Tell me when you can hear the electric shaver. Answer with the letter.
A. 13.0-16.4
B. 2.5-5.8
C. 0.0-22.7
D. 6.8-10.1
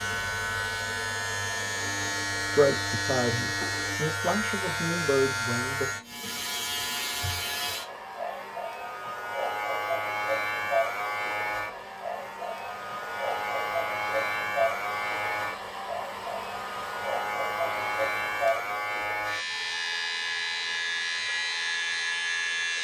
C.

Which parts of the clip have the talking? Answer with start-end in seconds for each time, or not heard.
2.5-5.8.